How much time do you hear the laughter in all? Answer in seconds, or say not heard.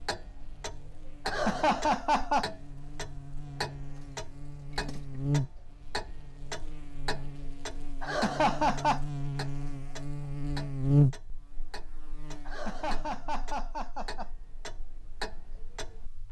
4 s.